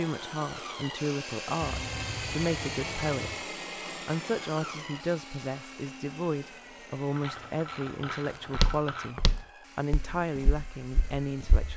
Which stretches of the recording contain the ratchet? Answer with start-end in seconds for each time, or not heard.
1.6-3.5, 7.2-9.2.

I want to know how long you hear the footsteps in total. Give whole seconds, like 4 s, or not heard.
3 s.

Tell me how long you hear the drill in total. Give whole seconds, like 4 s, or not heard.
12 s.